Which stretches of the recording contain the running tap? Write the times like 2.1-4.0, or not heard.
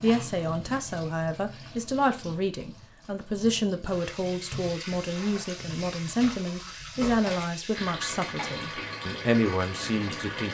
0.0-10.5.